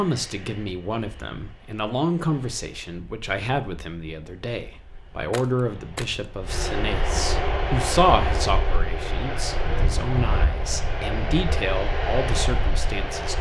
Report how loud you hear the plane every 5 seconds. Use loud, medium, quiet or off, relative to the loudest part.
quiet, loud, loud.